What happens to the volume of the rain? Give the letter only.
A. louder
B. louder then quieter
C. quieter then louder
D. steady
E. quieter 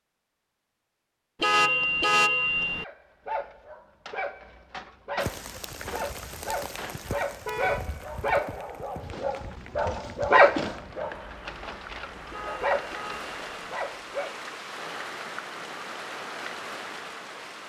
C.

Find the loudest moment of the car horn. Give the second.
2 s.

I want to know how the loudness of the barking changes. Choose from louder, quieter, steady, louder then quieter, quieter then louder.
louder then quieter.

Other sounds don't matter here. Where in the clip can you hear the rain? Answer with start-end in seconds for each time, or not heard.
5.2-17.6.